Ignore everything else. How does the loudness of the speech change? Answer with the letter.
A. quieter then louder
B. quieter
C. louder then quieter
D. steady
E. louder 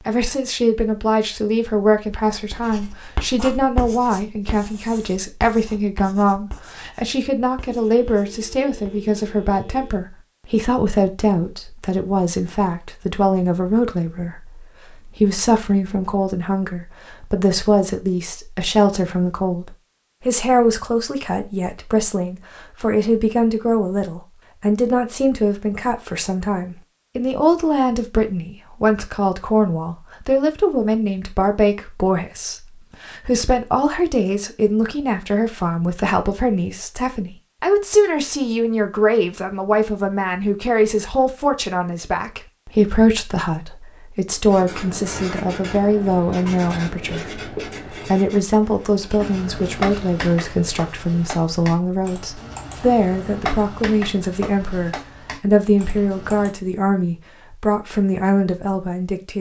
D.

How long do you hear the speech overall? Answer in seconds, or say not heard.
59 s.